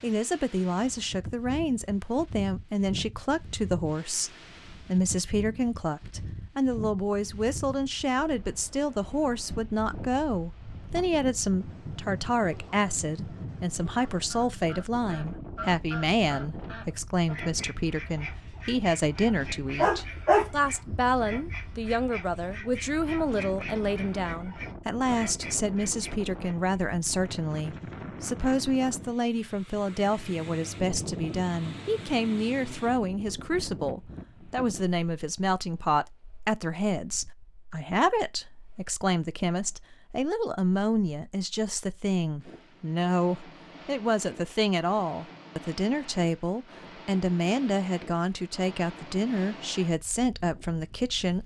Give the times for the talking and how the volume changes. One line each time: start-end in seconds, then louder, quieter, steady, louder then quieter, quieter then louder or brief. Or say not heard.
0.0-51.4 steady.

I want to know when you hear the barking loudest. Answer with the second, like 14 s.
20 s.